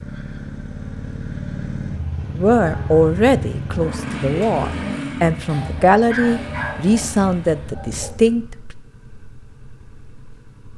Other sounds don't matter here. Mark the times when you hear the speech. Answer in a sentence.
The speech can be heard from 2.4 to 8.8 s.